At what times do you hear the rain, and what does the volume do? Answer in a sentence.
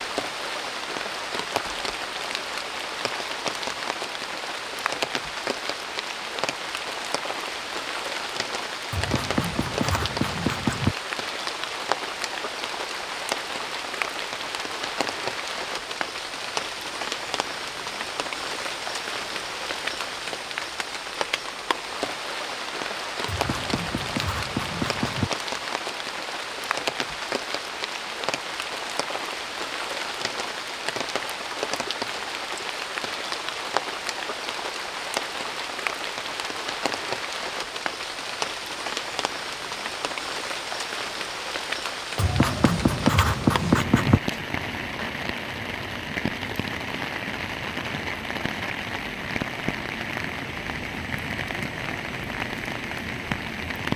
The rain can be heard from 0.0 to 53.9 s, at a steady volume.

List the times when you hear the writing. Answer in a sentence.
You can hear the writing from 8.9 to 10.9 s, from 23.2 to 25.3 s and from 42.1 to 44.2 s.